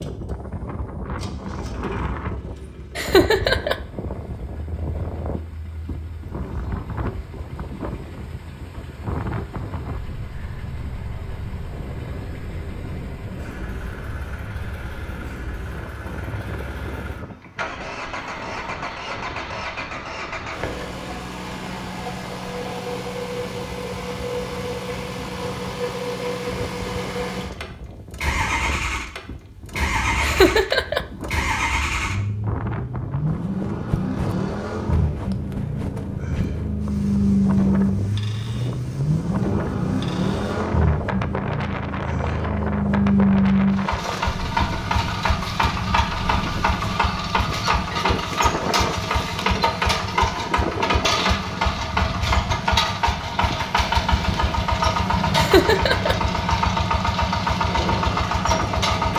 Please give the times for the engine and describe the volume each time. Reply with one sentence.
The engine can be heard from 0.0 to 59.1 s, getting louder.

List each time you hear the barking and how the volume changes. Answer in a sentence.
The barking can't be heard in this clip.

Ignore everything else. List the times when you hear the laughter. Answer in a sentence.
The laughter can be heard from 3.0 to 3.8 s, from 30.2 to 31.1 s and from 55.4 to 56.1 s.